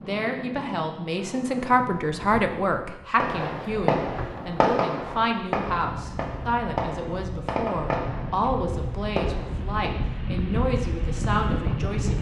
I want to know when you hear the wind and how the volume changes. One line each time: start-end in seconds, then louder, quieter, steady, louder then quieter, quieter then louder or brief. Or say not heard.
0.0-12.1 louder.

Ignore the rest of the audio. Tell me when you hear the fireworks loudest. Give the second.
5 s.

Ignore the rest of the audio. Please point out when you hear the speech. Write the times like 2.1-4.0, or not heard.
0.0-12.1.